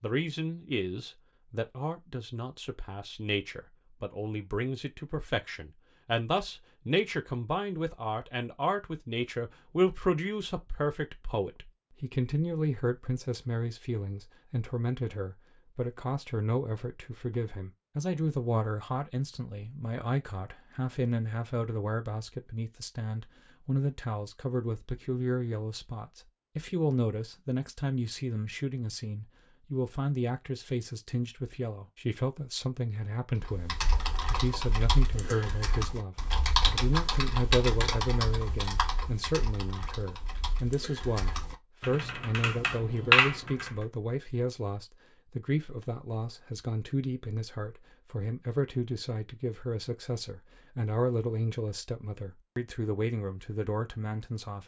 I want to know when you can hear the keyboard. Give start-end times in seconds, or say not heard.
33.4-43.8.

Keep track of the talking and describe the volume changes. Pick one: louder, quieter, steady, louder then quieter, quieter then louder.
steady.